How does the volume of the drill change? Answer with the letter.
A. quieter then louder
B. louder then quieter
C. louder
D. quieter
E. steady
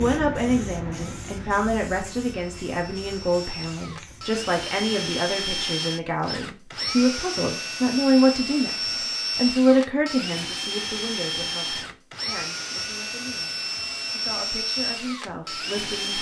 C.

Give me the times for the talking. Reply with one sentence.
The talking can be heard from 0.0 to 16.1 s.